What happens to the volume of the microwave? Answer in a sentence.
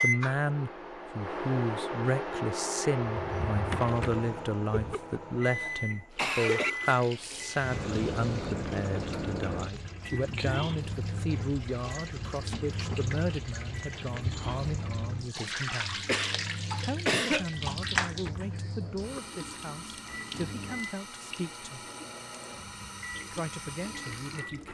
The volume of the microwave goes down.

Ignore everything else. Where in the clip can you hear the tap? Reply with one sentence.
You can hear the tap from 6.1 to 24.7 s.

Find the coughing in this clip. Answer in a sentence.
The coughing can be heard from 4.7 to 6.8 s and from 16.1 to 17.6 s.